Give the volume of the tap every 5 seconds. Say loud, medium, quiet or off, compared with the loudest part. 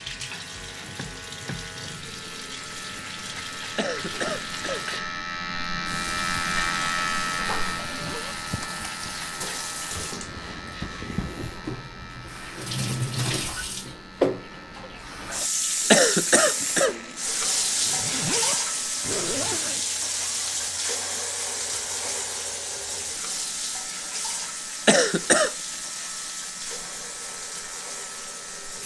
medium, medium, loud, loud, loud, medium.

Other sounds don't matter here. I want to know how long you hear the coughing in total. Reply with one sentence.
The coughing can be heard for 3 seconds in total.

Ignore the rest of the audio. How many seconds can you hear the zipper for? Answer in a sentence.
The zipper can be heard for 3 seconds in total.